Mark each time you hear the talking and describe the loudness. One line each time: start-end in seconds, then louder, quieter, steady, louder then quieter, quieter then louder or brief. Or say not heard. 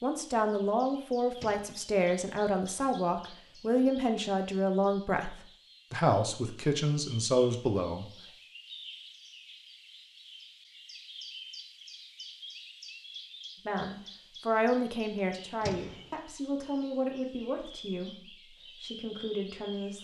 0.0-8.1 steady
13.7-20.0 quieter.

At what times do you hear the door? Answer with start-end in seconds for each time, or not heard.
1.4-1.9, 15.6-16.1.